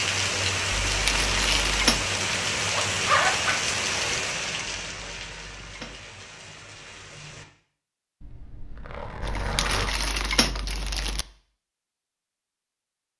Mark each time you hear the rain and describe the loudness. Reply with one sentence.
The rain can be heard from 0.0 to 7.5 s, getting quieter.